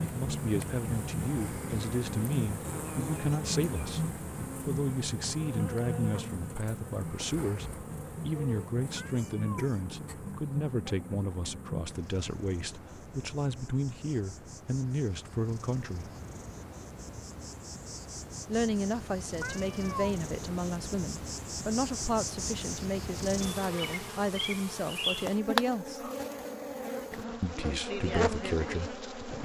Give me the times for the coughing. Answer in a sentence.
The coughing can't be heard in this clip.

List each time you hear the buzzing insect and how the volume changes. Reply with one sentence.
You can hear the buzzing insect from 0.0 to 29.4 s, getting quieter then louder.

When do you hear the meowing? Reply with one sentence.
You can hear the meowing from 8.9 to 9.7 s and from 19.4 to 20.1 s.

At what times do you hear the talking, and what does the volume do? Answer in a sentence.
The talking can be heard from 0.0 to 16.1 s, at a steady volume; from 18.4 to 26.1 s, at a steady volume; and briefly from 27.4 to 29.4 s.